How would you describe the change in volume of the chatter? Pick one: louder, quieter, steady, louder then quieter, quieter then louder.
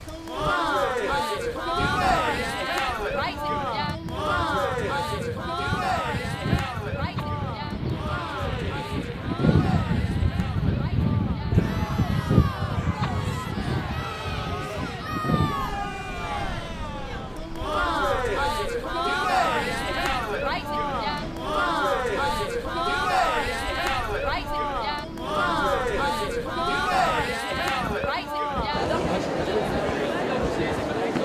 quieter then louder.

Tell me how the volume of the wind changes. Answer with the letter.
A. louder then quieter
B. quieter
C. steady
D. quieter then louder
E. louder
A.